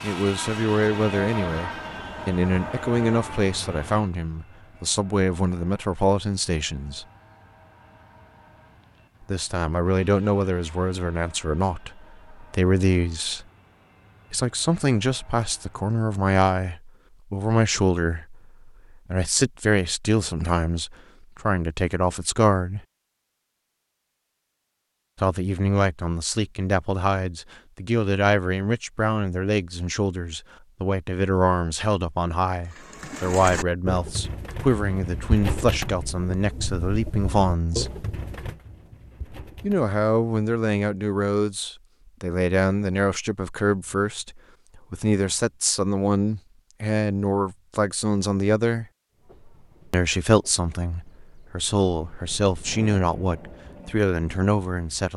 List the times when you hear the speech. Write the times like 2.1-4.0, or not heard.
0.0-7.0, 9.2-13.4, 14.3-22.8, 25.2-38.0, 39.6-48.9, 49.9-55.1.